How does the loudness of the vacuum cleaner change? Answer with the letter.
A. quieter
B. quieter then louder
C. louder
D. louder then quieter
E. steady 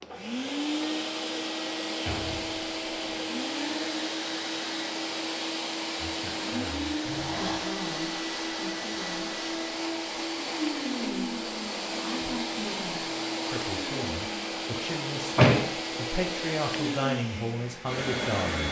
E.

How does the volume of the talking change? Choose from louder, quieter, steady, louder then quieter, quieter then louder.
louder.